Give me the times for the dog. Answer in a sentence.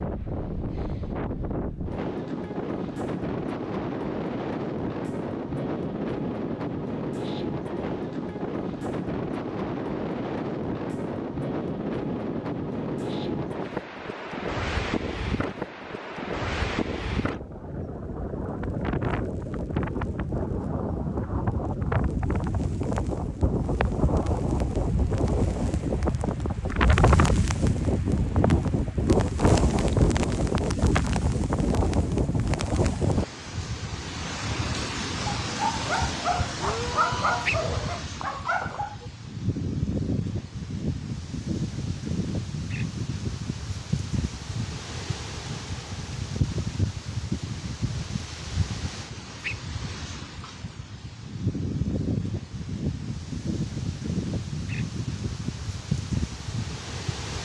The dog can be heard from 35.1 to 39.0 s.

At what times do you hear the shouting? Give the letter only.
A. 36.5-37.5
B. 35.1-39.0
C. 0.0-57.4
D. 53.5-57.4
A.